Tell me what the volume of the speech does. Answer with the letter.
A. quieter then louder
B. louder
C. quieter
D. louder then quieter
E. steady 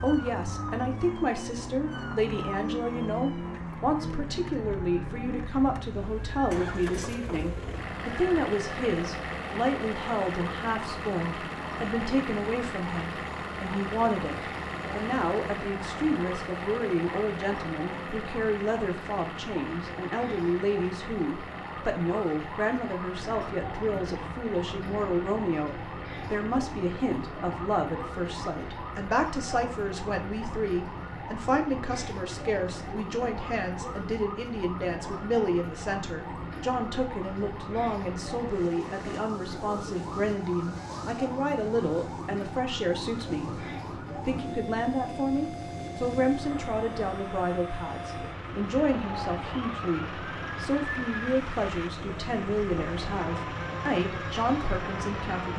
E.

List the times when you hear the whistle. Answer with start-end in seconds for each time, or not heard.
not heard.